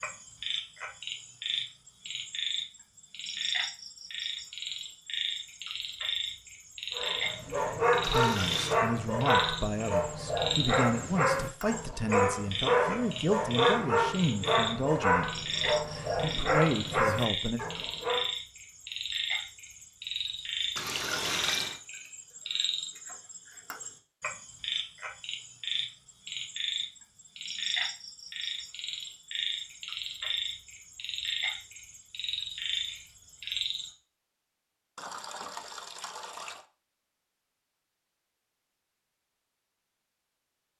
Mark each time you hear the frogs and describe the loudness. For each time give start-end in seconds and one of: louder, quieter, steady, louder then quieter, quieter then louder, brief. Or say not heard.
0.0-33.9 steady.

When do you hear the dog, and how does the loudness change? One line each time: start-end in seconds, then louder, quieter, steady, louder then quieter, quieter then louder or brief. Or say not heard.
7.0-18.3 steady.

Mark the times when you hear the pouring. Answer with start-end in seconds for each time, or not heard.
8.0-8.8, 20.8-21.8, 35.0-36.6.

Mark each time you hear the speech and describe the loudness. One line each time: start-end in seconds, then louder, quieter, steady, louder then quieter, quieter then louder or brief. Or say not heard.
8.1-17.6 steady.